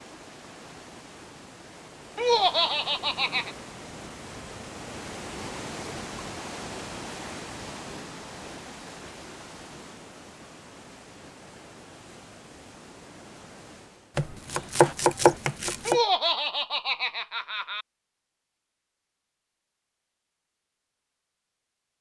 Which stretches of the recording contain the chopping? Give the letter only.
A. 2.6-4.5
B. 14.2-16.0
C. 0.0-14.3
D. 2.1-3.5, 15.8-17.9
B.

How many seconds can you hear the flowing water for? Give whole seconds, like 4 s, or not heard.
14 s.